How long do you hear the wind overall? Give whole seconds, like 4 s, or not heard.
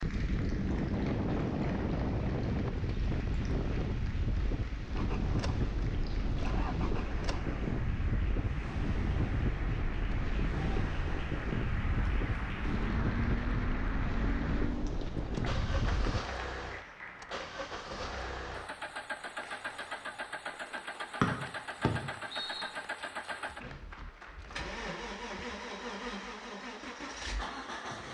16 s.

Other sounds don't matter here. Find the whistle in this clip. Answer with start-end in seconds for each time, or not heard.
21.2-22.6.